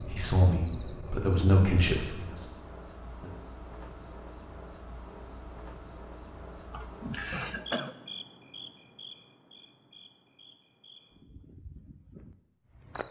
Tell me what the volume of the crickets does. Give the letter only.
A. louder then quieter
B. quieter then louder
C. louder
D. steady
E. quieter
E.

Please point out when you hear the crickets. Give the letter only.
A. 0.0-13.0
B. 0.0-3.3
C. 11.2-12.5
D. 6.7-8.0
A.